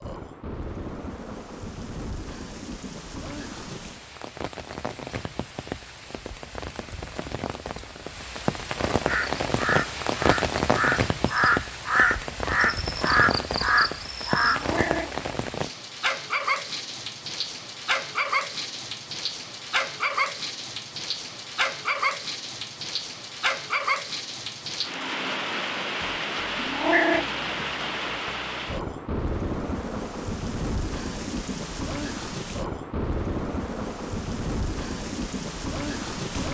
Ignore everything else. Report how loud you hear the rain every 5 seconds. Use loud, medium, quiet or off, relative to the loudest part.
medium, loud, loud, loud, loud, loud, loud, loud.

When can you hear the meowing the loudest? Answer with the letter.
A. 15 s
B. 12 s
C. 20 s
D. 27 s
D.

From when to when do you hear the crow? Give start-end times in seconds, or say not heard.
9.1-14.7.